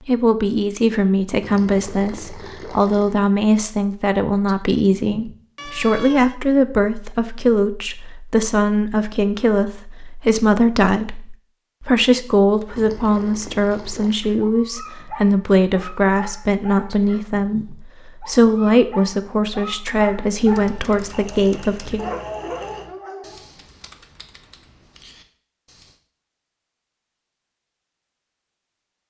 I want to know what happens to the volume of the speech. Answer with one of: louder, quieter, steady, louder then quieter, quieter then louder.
steady.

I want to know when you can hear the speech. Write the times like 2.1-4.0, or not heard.
0.1-22.1.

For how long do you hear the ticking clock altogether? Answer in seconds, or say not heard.
not heard.